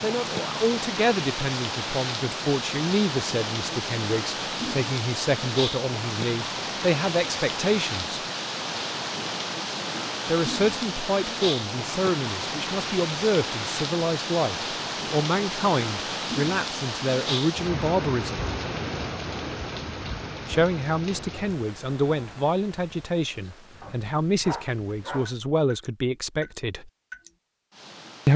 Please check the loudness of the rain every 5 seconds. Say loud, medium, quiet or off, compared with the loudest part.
loud, loud, loud, loud, medium, quiet.